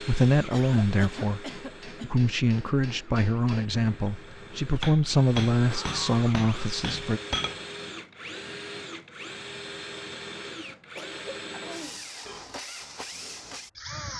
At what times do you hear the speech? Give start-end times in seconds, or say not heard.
0.0-7.2.